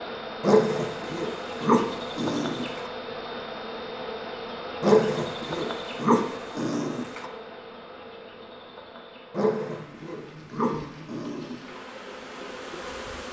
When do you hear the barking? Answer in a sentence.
You can hear the barking from 0.4 to 2.9 s, from 4.8 to 7.2 s and from 9.3 to 11.8 s.